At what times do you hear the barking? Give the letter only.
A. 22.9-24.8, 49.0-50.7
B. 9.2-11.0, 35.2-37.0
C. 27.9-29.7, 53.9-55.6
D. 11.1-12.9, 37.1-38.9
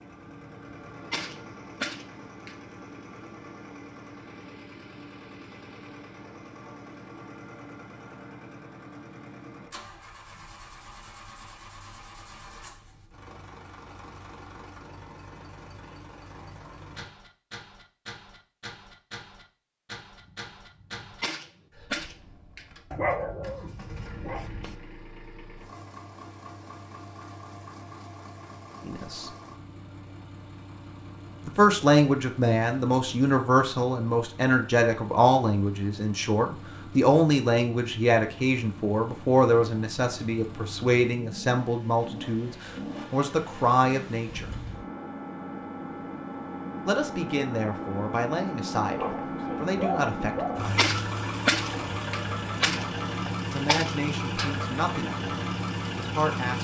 A.